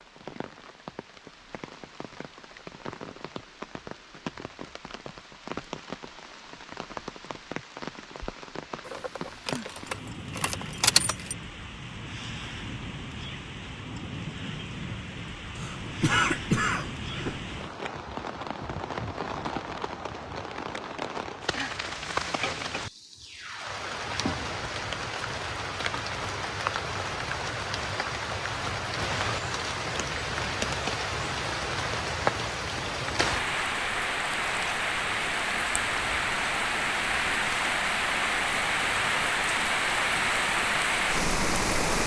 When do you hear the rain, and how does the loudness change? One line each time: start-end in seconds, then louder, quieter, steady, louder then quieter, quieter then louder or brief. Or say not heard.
0.0-42.0 louder.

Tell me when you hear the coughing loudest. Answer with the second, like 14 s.
16 s.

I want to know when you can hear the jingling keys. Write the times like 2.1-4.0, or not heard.
8.8-11.3.